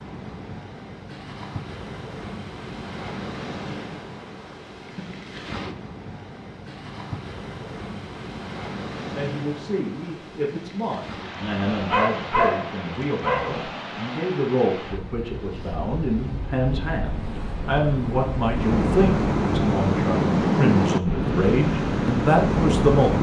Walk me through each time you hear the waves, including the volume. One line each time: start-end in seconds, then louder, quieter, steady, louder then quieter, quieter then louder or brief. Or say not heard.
0.0-23.1 louder.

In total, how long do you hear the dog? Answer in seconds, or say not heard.
2 s.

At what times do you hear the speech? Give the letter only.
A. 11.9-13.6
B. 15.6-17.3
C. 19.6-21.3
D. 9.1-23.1
D.